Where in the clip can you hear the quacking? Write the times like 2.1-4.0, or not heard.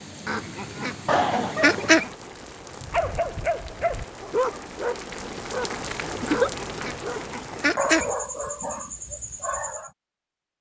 0.2-2.1, 6.2-8.1.